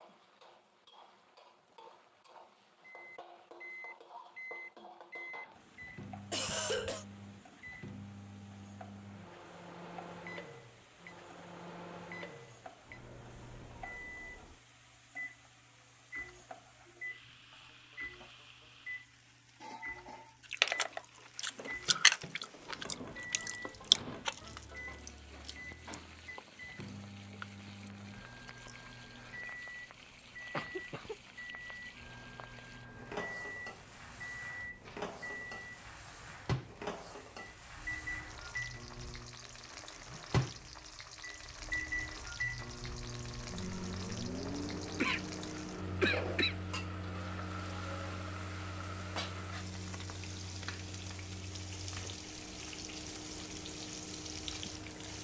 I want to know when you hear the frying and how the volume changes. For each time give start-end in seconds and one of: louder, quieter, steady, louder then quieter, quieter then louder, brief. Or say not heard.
0.0-55.1 louder.